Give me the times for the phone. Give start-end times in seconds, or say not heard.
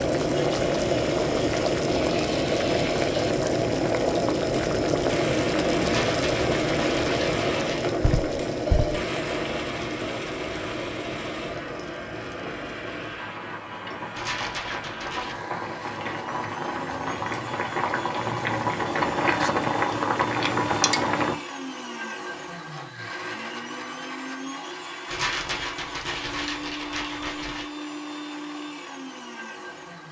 8.0-9.1.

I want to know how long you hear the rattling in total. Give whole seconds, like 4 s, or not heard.
6 s.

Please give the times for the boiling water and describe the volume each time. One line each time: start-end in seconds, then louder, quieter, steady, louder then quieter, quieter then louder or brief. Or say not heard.
0.0-21.4 quieter then louder.